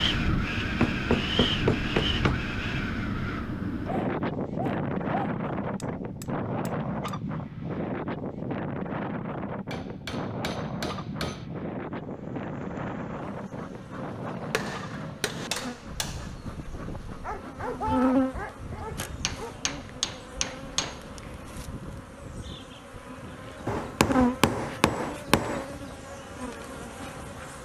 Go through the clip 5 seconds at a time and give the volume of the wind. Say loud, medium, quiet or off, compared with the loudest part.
loud, loud, medium, quiet, quiet, quiet.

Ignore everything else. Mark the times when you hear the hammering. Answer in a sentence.
The hammering can be heard from 0.8 to 2.4 s, from 5.8 to 7.2 s, from 9.7 to 11.5 s, from 14.5 to 16.3 s, from 19.2 to 21.0 s and from 23.6 to 25.6 s.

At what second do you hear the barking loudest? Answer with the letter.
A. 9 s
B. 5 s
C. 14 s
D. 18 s
D.